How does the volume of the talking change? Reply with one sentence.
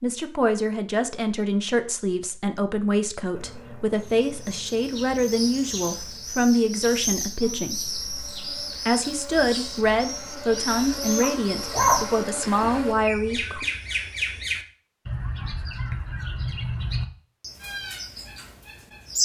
The loudness of the talking stays about the same.